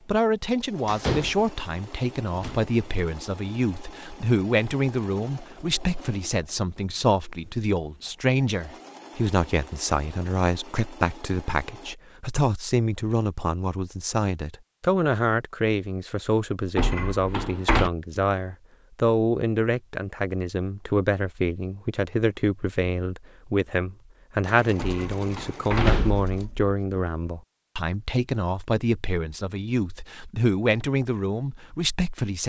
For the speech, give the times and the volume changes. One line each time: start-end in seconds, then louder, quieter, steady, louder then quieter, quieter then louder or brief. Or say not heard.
0.1-32.4 steady.